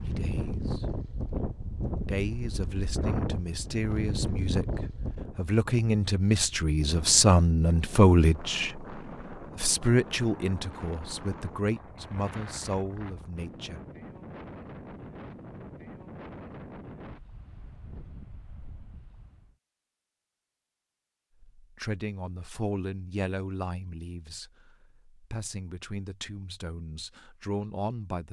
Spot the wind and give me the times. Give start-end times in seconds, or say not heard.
0.0-19.6.